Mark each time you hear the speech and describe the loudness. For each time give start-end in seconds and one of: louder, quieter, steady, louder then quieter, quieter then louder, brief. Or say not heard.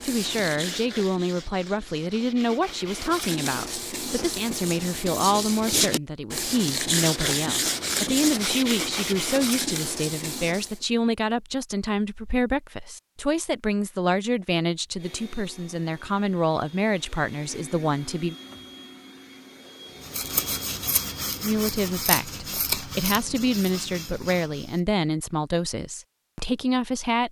0.0-18.4 steady
21.4-27.2 steady.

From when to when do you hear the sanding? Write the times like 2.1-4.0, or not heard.
0.0-10.8, 20.0-24.8.